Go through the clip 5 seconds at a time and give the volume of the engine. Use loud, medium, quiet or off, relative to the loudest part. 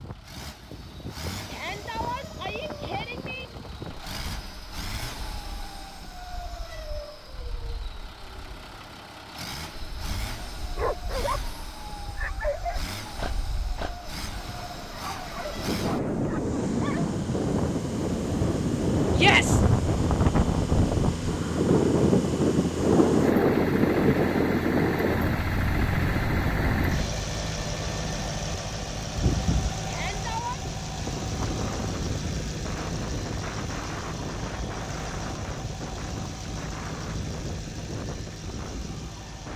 medium, medium, medium, medium, loud, loud, loud, medium.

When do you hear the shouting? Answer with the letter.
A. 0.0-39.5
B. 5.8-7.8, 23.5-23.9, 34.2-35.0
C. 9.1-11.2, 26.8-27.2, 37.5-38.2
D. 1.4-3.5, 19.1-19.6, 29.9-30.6
D.